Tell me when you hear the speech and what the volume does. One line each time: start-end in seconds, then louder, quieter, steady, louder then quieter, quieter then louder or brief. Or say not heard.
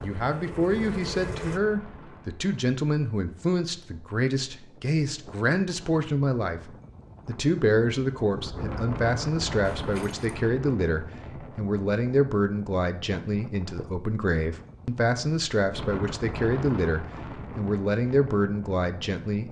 0.0-19.4 steady.